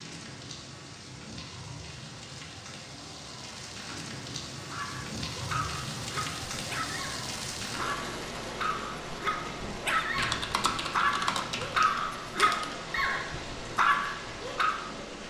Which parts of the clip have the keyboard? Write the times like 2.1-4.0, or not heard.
10.2-12.8.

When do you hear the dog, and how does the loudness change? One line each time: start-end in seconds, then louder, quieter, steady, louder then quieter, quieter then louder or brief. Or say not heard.
4.7-14.8 louder.